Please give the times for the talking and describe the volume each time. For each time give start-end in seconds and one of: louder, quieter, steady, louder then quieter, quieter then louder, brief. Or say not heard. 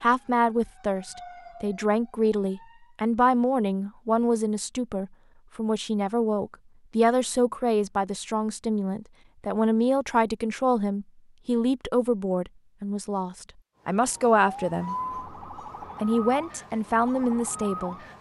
0.0-14.9 steady
16.0-17.9 brief.